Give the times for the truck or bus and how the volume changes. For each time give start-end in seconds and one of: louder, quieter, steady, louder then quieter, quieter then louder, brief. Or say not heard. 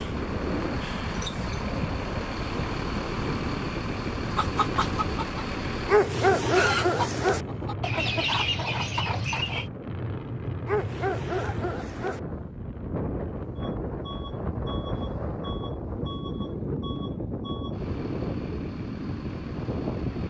0.0-20.2 quieter.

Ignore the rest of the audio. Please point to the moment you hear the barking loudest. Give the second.
6 s.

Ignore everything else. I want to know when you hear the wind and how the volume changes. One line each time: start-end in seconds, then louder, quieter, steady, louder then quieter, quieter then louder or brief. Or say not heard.
0.0-20.2 quieter then louder.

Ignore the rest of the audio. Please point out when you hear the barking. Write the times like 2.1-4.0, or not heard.
5.8-7.5, 10.7-12.2.